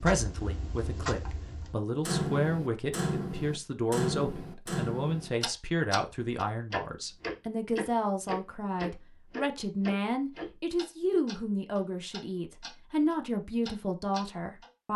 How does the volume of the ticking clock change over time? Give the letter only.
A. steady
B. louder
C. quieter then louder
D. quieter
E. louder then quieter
D.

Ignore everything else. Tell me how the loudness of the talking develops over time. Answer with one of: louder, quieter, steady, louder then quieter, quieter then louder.
steady.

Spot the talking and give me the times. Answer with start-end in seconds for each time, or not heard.
0.0-14.9.